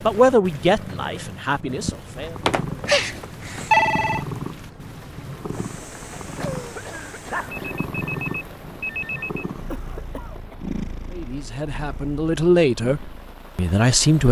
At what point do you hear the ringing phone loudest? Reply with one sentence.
The volume of the ringing phone peaks at 4 seconds.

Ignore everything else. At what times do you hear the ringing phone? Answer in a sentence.
You can hear the ringing phone from 2.5 to 4.2 s and from 7.2 to 9.4 s.